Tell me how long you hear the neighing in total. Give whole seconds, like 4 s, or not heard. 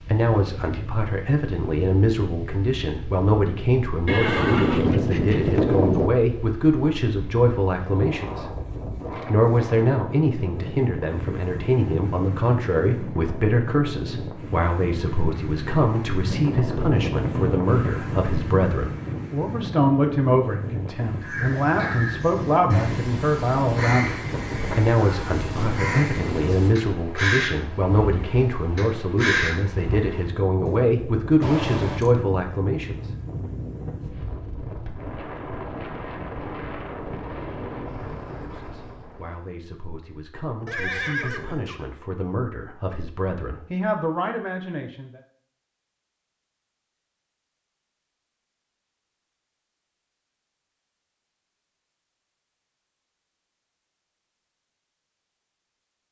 4 s.